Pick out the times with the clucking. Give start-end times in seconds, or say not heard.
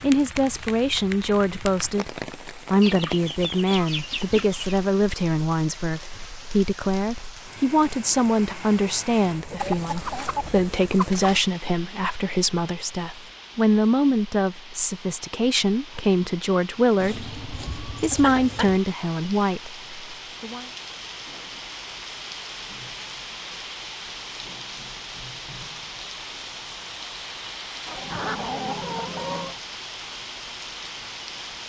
2.8-4.8, 9.6-11.4, 17.0-18.8, 27.9-29.6.